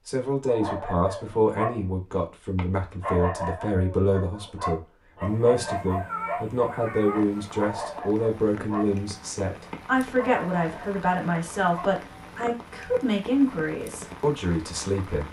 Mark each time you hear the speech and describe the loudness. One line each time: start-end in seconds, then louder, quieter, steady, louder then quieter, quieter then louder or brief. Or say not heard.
0.1-15.2 steady.